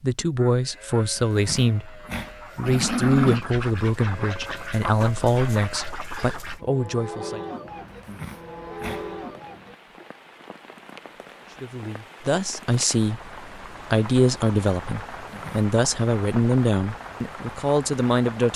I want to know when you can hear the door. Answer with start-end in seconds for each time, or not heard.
not heard.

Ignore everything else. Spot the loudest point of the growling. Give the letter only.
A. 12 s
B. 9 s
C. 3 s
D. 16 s
C.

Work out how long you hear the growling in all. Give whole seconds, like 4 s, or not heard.
4 s.